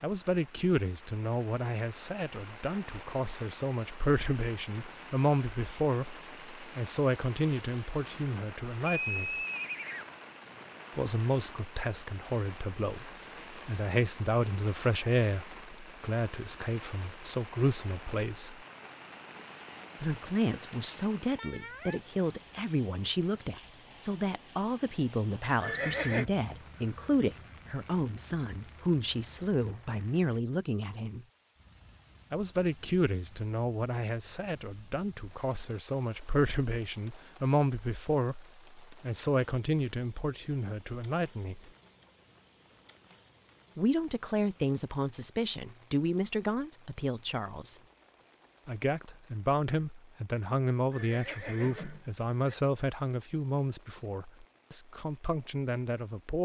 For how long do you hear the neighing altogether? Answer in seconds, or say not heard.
4 s.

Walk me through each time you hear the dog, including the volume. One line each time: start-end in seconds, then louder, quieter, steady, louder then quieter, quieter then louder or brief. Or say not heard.
not heard.